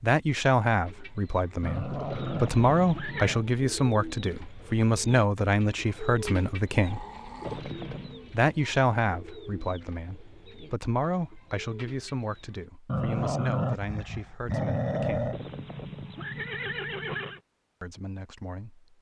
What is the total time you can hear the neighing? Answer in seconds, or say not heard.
4 s.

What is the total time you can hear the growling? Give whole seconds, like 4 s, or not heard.
5 s.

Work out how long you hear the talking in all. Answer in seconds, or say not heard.
15 s.